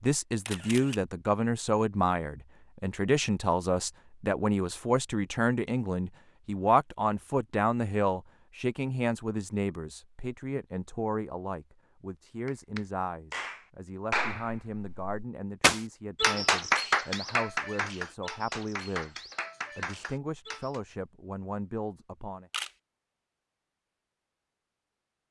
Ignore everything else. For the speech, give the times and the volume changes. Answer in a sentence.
The speech can be heard from 0.0 to 22.5 s, getting quieter.